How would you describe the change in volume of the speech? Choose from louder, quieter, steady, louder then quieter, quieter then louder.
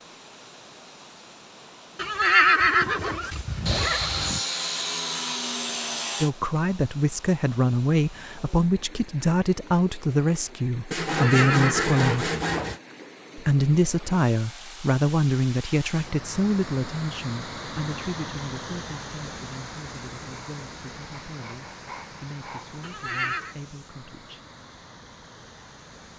quieter.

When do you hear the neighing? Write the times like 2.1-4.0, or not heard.
1.9-4.4, 11.1-12.8, 22.8-23.6.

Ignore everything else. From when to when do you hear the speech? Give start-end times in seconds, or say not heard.
6.2-12.3, 13.3-24.4.